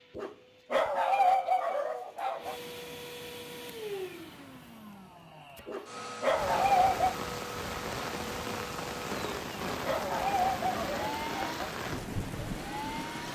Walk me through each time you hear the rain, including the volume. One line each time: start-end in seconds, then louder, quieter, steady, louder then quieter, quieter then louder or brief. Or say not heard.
6.3-13.3 steady.